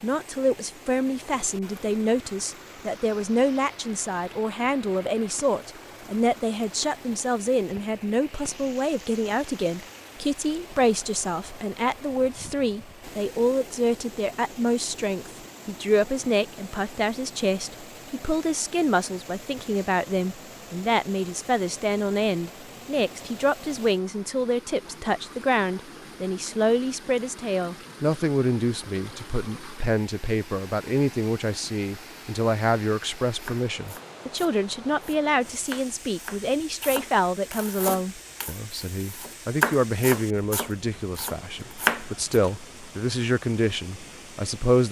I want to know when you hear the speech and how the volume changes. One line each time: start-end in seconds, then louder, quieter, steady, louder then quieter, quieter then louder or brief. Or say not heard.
0.0-44.8 steady.